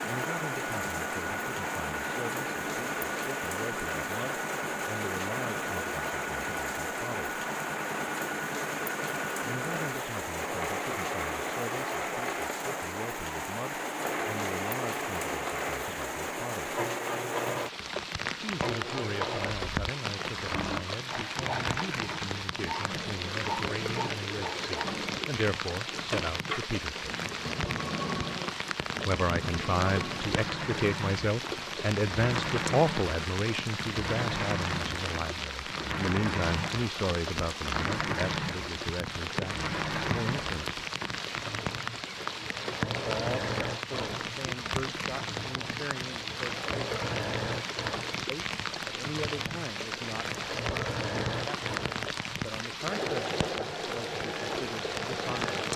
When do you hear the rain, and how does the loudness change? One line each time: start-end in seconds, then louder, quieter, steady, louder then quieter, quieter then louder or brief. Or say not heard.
0.0-55.7 steady.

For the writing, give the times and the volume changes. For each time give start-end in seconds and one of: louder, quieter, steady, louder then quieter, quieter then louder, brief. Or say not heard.
not heard.